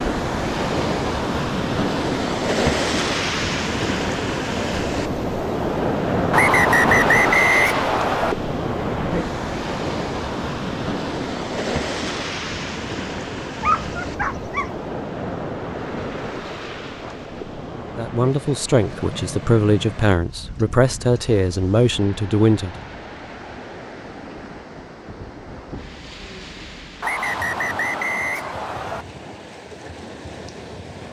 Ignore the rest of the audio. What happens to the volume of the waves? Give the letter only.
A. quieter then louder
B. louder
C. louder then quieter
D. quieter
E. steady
D.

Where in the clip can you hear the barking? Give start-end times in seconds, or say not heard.
13.6-14.8.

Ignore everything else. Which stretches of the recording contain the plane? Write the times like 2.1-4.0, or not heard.
not heard.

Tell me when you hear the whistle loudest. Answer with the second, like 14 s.
7 s.